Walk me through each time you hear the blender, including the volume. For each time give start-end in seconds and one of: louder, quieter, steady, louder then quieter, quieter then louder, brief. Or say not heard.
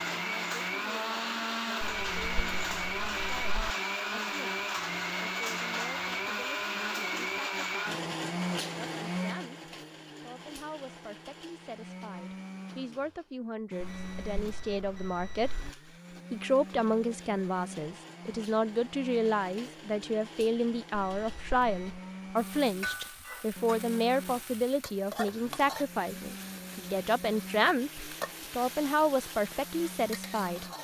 0.0-30.8 quieter.